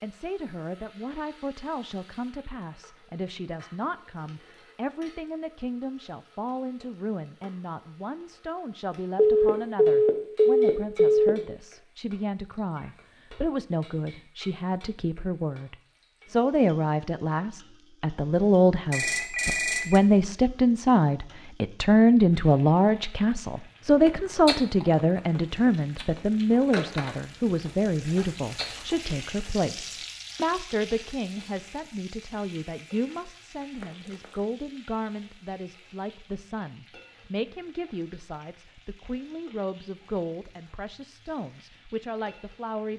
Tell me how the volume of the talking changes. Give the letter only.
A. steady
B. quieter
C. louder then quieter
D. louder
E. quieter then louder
C.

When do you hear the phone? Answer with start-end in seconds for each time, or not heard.
9.2-11.3, 18.9-20.0, 33.8-34.2.